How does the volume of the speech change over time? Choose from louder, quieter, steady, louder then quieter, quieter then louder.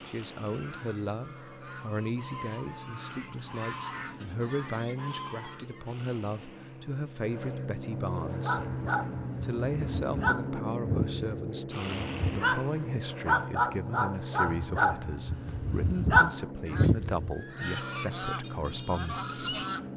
steady.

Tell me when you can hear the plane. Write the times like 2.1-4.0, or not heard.
0.0-19.9.